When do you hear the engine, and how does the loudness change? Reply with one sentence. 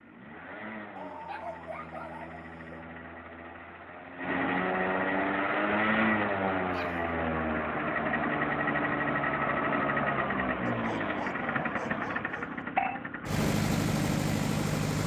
You can hear the engine from 0.0 to 15.0 s, getting louder.